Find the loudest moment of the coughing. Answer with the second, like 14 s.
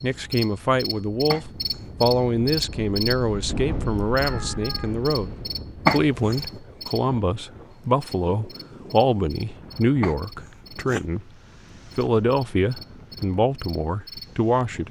6 s.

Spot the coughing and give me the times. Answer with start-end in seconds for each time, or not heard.
1.2-1.9, 5.8-6.5, 10.0-11.1.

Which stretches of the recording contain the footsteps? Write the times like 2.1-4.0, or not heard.
not heard.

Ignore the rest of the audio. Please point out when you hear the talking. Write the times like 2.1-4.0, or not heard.
0.0-5.3, 5.9-11.3, 11.9-14.8.